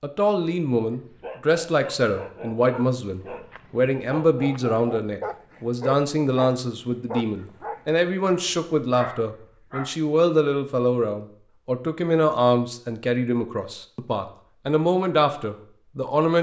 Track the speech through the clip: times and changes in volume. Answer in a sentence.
You can hear the speech from 0.0 to 16.3 s, at a steady volume.